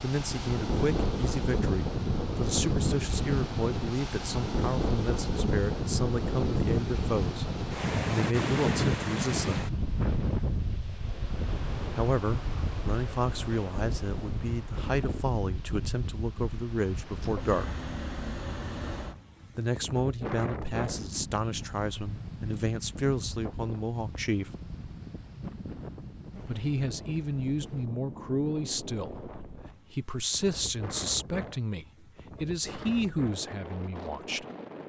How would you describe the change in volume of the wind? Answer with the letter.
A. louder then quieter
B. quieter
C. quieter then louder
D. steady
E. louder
B.